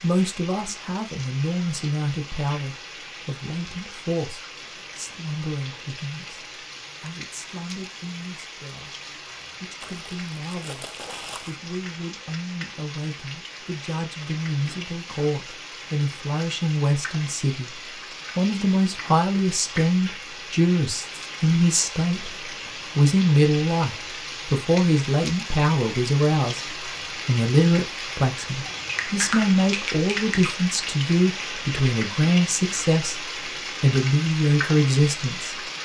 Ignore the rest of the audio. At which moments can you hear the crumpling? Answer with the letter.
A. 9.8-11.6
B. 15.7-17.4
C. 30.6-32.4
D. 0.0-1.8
A.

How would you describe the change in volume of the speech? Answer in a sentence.
The volume of the speech goes down, then up.